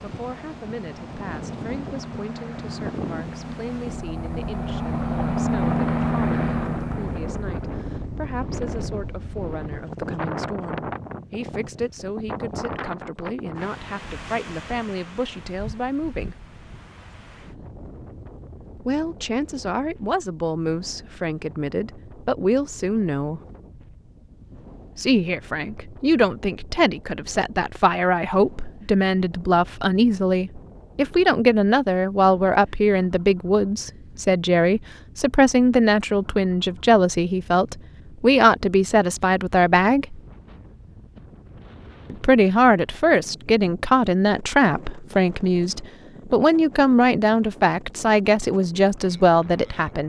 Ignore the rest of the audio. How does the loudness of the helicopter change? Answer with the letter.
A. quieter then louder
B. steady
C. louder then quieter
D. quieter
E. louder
E.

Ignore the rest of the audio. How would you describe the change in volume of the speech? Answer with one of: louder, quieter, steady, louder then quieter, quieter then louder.
louder.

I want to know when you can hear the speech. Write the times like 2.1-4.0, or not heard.
0.0-16.4, 18.9-23.4, 24.9-40.2, 42.1-50.0.